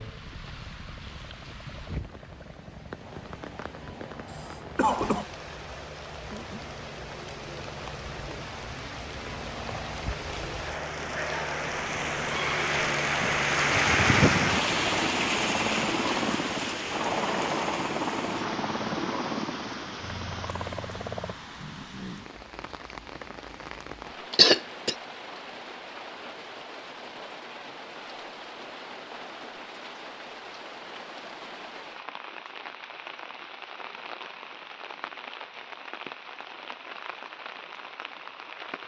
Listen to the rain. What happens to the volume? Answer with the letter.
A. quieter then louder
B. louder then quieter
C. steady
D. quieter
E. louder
B.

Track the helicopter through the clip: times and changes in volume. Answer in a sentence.
You can hear the helicopter from 0.0 to 21.4 s, getting louder.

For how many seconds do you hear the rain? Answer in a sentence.
The rain can be heard for 39 seconds in total.